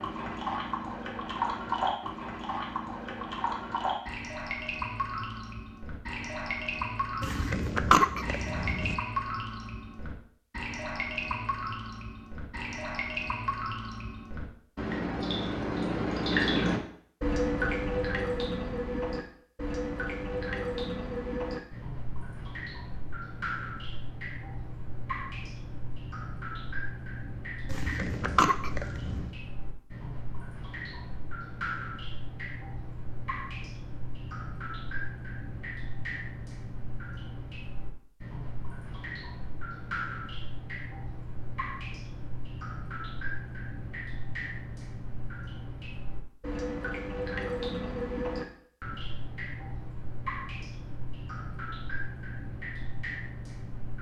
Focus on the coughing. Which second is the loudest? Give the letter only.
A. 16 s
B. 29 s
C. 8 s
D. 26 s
C.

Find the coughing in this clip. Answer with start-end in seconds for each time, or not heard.
7.2-8.9, 27.6-29.3.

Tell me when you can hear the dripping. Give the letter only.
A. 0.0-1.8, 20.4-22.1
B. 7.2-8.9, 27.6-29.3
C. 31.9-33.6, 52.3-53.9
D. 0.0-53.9
D.